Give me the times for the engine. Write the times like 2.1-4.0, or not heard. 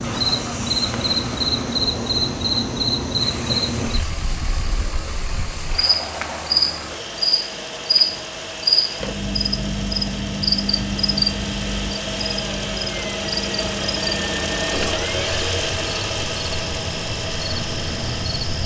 0.0-18.6.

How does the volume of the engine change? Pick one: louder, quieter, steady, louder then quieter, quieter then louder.
louder.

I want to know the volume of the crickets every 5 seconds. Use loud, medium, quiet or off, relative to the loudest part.
loud, loud, loud, medium.